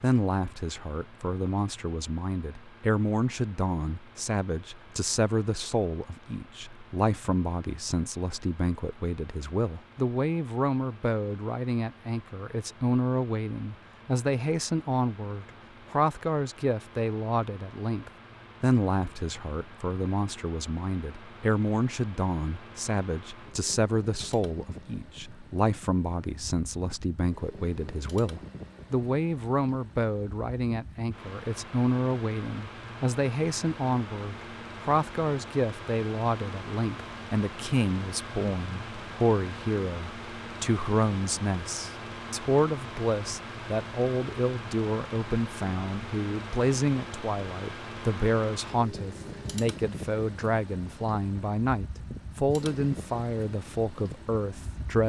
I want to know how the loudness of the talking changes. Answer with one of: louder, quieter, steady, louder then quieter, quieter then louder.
steady.